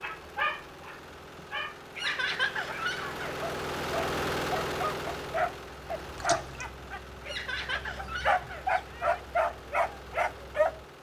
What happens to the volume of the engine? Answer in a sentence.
The loudness of the engine goes up, then down.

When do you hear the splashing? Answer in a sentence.
The splashing can be heard from 6.2 to 6.7 s.